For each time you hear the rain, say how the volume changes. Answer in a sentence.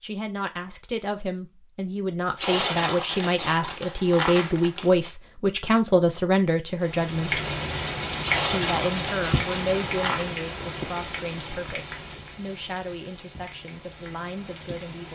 You can hear the rain from 6.8 to 15.1 s, getting quieter.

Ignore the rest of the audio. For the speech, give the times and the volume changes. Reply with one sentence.
You can hear the speech from 0.0 to 7.4 s, getting louder; and from 8.5 to 15.1 s, getting quieter.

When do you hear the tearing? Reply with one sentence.
You can hear the tearing from 2.4 to 4.9 s and from 8.2 to 10.2 s.